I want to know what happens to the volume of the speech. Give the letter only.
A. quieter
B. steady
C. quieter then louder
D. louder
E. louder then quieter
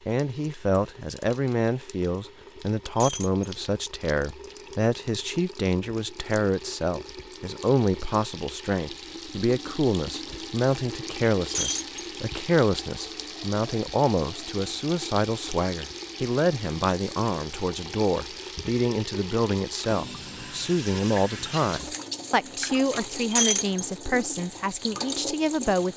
B.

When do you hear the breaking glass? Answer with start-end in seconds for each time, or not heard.
3.0-3.5, 11.5-12.0, 23.3-23.9.